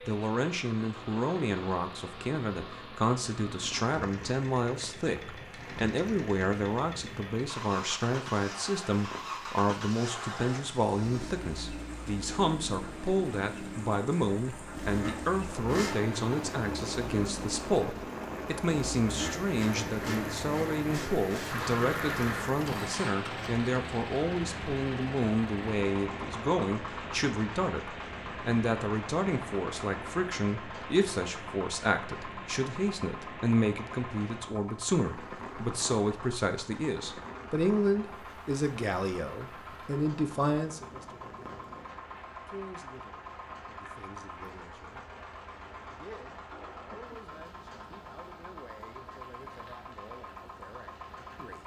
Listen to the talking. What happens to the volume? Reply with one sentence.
The loudness of the talking goes down.